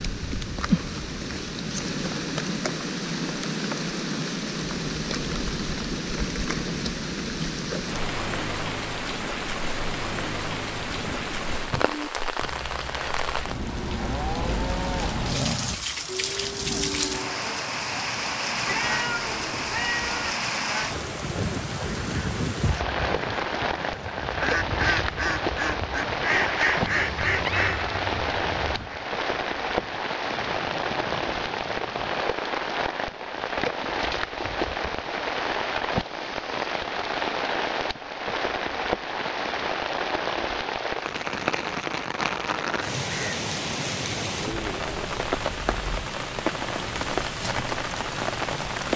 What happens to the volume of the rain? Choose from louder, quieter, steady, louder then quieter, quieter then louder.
steady.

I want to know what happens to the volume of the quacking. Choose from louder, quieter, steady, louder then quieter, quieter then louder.
louder then quieter.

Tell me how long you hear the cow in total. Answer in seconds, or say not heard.
7 s.